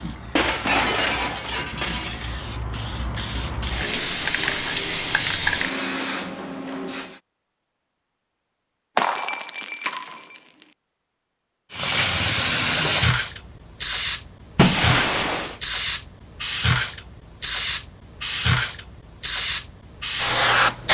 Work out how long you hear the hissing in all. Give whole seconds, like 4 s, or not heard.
16 s.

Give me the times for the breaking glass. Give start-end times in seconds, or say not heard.
0.3-2.4, 8.9-10.4, 14.6-15.6.